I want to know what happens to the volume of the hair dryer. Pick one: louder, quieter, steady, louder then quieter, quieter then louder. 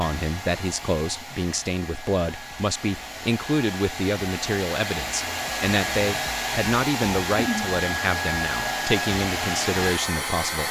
louder.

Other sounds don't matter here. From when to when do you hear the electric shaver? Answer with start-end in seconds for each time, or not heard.
not heard.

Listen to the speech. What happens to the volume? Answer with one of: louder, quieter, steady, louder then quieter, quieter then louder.
steady.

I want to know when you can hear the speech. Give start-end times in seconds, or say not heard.
0.0-10.6.